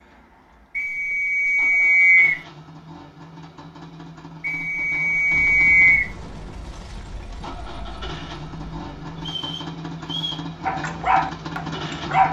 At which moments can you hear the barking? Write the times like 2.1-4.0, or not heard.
10.7-12.2.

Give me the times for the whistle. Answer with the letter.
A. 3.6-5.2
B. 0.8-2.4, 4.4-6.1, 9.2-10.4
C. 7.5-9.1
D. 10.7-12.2
B.